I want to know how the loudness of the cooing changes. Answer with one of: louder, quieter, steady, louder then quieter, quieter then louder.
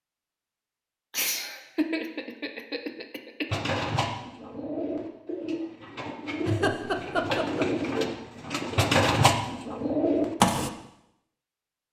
louder.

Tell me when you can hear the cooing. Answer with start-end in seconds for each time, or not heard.
3.5-10.7.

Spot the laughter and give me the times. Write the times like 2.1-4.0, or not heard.
1.1-3.5, 6.5-7.7.